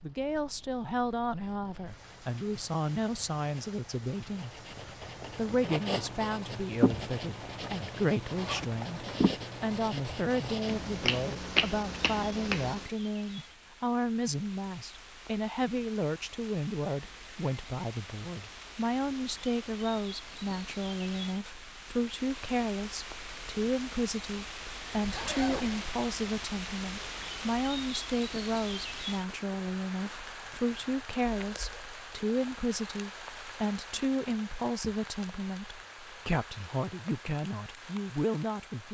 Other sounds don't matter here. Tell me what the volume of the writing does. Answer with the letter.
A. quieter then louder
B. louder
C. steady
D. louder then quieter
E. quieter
B.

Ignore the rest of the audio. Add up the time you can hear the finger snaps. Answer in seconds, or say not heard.
2 s.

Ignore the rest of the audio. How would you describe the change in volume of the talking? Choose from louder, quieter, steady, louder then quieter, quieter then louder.
steady.